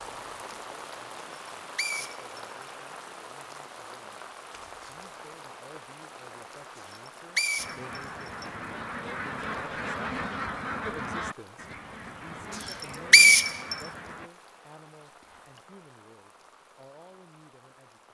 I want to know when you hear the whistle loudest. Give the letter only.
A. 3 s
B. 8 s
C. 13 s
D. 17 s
C.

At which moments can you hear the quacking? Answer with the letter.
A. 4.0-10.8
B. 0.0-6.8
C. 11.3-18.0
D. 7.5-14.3
D.